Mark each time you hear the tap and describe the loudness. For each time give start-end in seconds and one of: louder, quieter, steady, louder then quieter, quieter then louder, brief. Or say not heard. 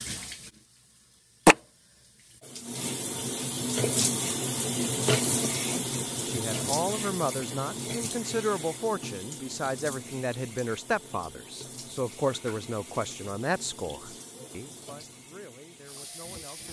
0.0-16.6 quieter.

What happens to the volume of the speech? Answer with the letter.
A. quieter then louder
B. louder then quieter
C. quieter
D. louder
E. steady
C.